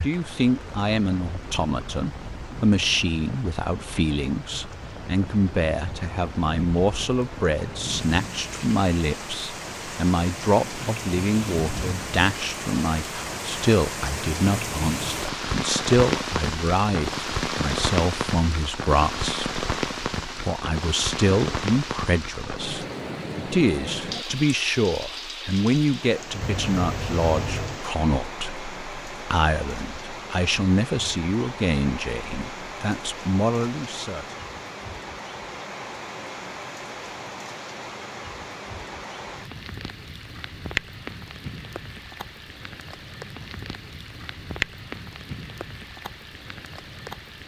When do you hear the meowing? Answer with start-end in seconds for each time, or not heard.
26.4-27.8.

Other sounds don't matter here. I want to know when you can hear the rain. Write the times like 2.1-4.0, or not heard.
0.0-47.4.